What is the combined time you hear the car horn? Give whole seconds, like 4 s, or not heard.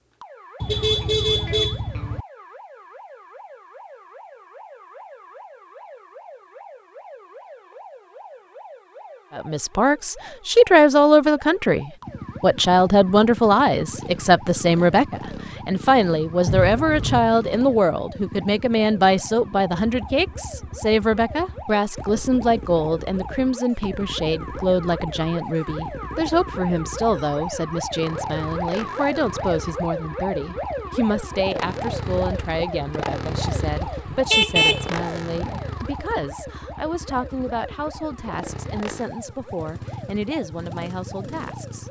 4 s.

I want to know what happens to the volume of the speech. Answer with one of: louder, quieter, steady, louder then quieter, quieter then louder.
quieter.